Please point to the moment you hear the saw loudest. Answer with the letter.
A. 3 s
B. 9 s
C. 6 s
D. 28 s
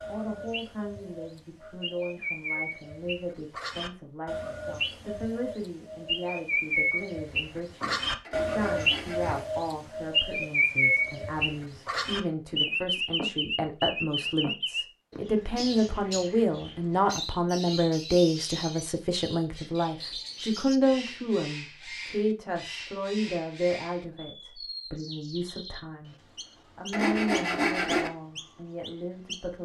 D.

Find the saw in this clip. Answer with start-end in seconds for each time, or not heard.
8.2-9.4, 26.9-28.1.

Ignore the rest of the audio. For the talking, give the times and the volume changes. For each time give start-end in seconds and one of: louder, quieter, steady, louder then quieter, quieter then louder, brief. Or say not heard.
0.1-29.6 louder then quieter.